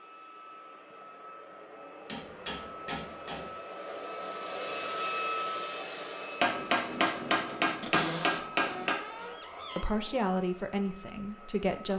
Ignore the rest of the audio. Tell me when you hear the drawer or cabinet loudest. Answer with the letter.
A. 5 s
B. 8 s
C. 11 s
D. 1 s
B.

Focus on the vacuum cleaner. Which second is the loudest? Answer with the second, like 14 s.
5 s.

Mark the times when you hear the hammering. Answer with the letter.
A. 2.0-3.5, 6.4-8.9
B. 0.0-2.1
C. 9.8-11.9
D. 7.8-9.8
A.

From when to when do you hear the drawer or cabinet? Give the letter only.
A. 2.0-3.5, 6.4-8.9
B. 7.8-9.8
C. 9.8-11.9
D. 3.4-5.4
B.